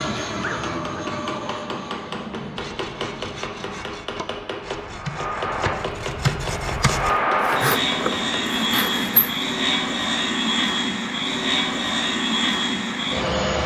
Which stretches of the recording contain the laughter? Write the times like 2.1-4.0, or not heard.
not heard.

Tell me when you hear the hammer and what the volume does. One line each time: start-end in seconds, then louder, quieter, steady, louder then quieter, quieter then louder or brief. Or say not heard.
0.5-8.7 steady.